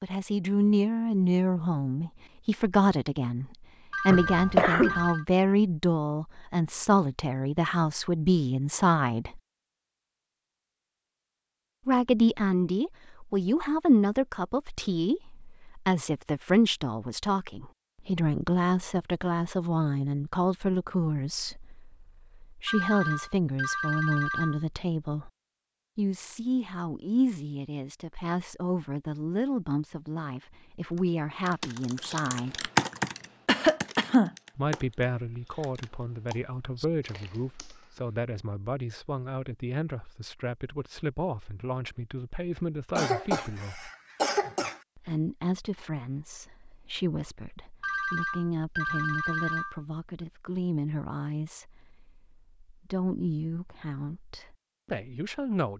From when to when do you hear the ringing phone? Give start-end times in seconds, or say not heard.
3.9-5.2, 22.6-24.6, 47.8-49.8.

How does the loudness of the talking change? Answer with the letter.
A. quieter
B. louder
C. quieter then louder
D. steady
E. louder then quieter
A.